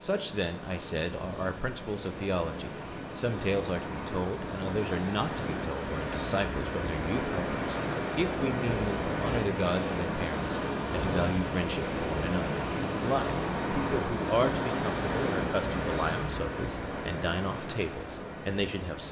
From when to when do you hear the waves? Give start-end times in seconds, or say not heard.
0.0-19.0.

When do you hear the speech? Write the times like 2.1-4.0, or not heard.
0.0-19.0.